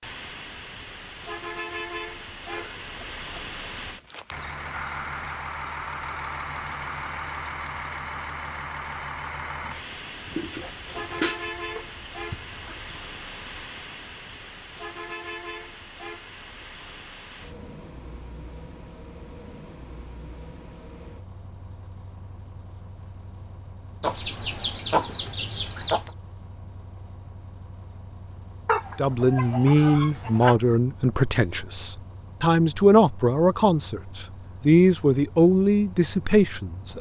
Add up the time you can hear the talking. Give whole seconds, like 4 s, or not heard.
8 s.